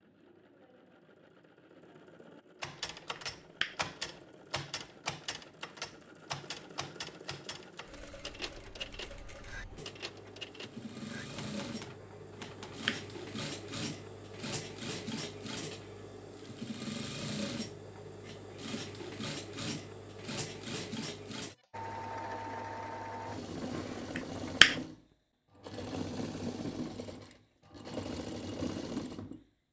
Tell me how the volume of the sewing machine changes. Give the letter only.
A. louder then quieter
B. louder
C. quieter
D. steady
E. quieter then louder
B.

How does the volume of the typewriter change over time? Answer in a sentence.
The volume of the typewriter goes down.